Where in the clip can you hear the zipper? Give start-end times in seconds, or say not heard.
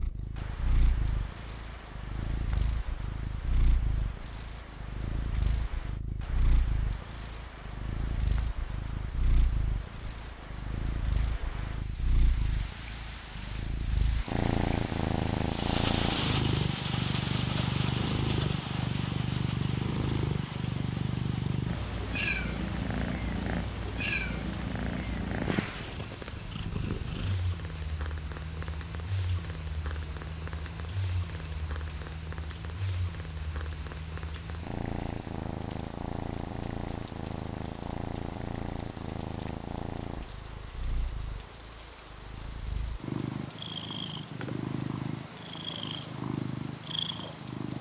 not heard.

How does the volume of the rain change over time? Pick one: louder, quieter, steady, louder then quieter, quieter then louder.
louder then quieter.